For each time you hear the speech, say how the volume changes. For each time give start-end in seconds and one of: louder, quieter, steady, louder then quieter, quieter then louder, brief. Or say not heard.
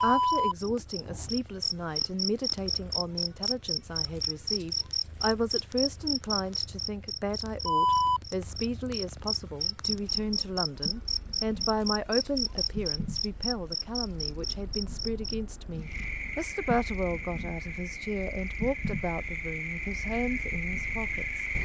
0.0-21.4 steady.